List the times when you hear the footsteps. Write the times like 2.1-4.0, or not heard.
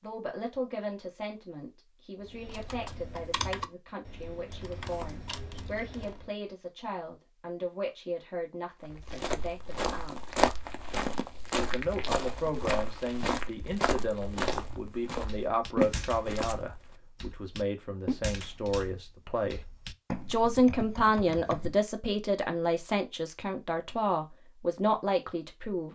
8.8-16.8.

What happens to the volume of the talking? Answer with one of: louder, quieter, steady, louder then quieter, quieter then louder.
louder.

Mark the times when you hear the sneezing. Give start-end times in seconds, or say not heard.
not heard.